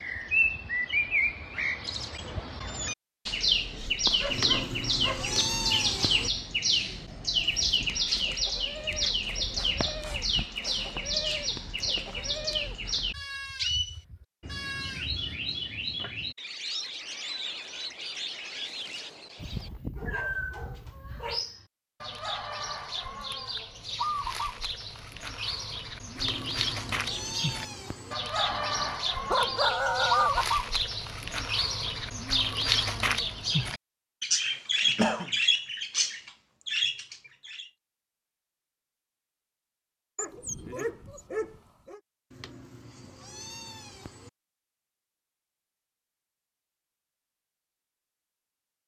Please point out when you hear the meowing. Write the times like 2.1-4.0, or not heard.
4.2-6.3, 26.1-28.1, 42.3-44.3.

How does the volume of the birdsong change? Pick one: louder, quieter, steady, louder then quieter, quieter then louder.
quieter then louder.